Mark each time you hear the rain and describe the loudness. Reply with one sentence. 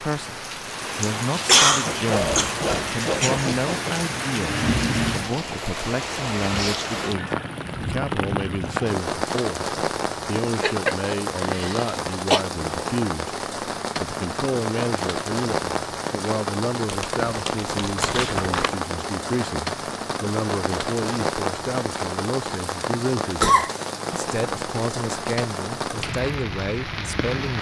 The rain can be heard from 0.0 to 27.5 s, at a steady volume.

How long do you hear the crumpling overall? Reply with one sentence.
You can hear the crumpling for 2 seconds altogether.